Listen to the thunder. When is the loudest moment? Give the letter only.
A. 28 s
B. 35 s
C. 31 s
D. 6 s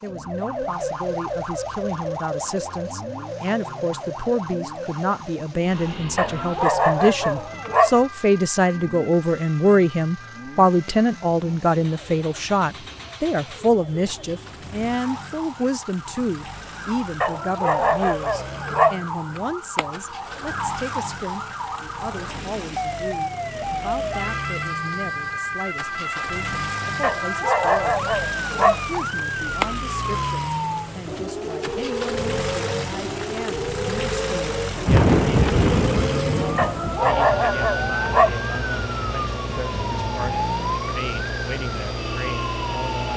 B.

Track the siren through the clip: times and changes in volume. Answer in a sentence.
You can hear the siren from 0.0 to 43.1 s, getting quieter then louder.